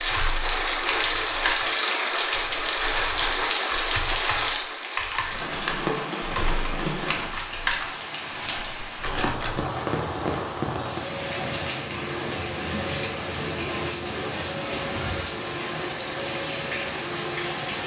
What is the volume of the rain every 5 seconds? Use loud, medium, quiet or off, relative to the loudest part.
loud, medium, medium, medium.